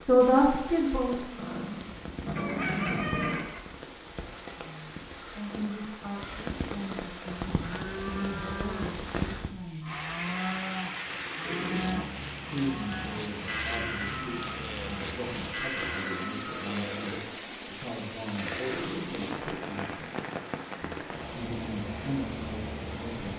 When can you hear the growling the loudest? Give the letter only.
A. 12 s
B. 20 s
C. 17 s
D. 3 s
D.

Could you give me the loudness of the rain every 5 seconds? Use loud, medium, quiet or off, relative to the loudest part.
medium, loud, loud, loud, loud.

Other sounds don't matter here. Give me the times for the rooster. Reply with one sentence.
You can hear the rooster from 2.3 to 3.6 s.